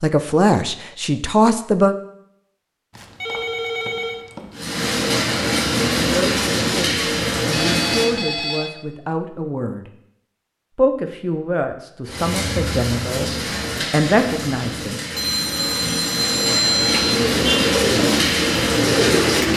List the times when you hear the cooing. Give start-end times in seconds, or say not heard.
16.9-19.5.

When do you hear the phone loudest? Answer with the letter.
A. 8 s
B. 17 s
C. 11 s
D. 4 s
B.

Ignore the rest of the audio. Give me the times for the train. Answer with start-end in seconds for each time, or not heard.
4.5-8.2, 12.1-19.5.